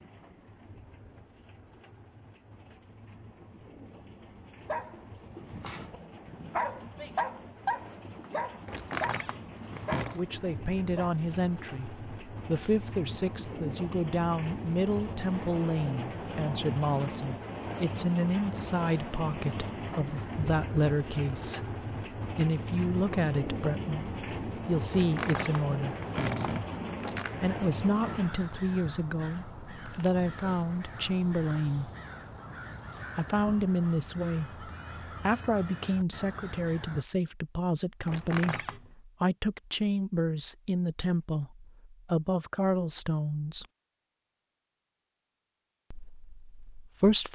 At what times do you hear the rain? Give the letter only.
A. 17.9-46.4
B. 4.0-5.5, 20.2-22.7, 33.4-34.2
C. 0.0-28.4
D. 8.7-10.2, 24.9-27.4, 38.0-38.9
C.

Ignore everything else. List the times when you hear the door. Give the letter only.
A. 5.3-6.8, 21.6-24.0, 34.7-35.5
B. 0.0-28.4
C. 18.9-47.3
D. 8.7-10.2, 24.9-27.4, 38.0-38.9
D.